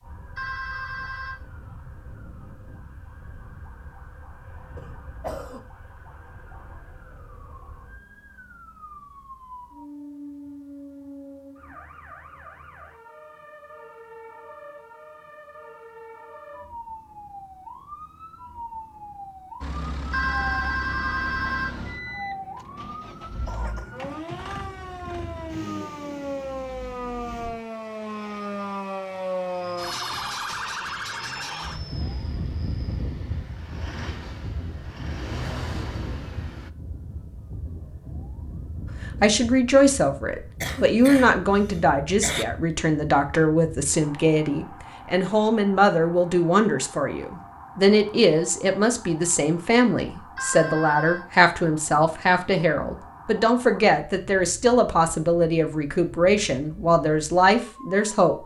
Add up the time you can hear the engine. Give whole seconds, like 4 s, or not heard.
17 s.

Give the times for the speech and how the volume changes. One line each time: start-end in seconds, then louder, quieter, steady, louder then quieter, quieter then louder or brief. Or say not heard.
39.0-58.4 steady.